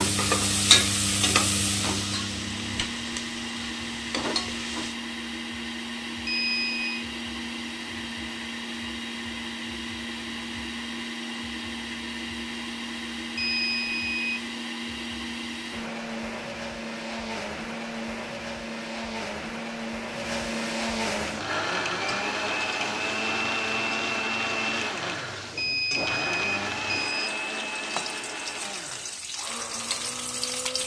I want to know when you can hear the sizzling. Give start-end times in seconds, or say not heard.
0.0-5.0, 21.1-30.8.